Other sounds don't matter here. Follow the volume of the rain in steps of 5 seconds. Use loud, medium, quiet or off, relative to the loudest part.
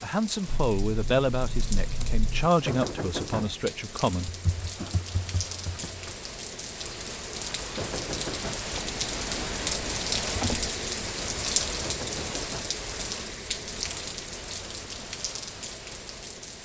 medium, loud, loud, medium.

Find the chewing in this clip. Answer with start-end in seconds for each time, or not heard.
not heard.